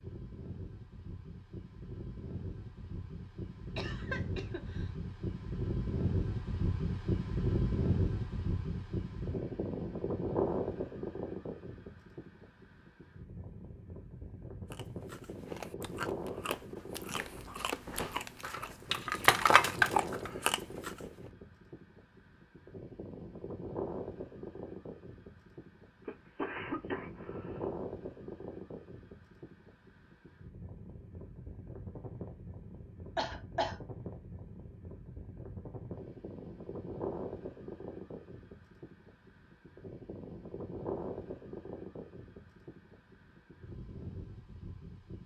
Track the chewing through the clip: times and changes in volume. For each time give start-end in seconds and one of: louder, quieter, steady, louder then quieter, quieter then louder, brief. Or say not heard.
14.7-20.9 louder.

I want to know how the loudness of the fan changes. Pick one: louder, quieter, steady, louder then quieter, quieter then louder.
quieter.